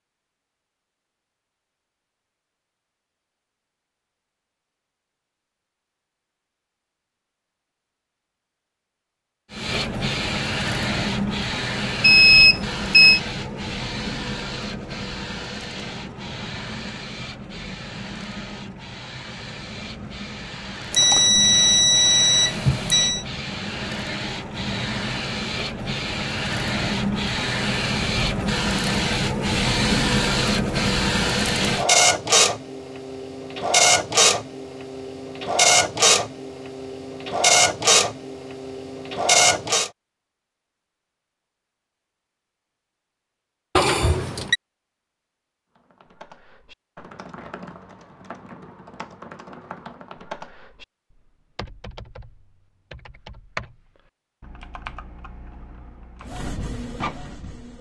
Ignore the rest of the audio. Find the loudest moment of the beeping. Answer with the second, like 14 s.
12 s.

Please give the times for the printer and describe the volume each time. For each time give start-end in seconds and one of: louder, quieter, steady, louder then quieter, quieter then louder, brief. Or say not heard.
9.5-39.9 quieter then louder
56.2-57.7 brief.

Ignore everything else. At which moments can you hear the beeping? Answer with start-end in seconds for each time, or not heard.
12.0-13.2, 20.9-23.2, 43.8-44.5.